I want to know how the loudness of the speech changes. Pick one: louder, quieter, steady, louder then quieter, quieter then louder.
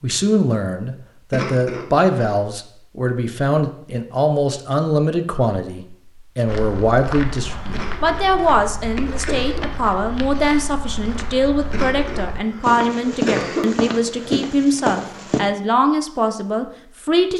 steady.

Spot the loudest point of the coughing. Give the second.
13 s.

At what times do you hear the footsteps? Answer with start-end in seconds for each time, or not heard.
6.5-15.4.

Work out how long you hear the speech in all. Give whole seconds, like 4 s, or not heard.
17 s.